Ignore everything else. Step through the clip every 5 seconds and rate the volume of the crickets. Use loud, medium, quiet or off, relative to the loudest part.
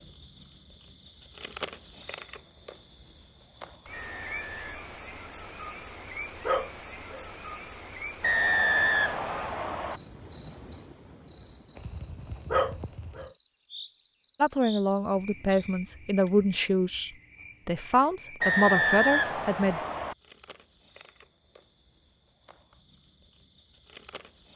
loud, loud, medium, quiet, medium.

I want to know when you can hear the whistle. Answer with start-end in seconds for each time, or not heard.
3.9-4.9, 8.2-10.0, 18.4-20.1.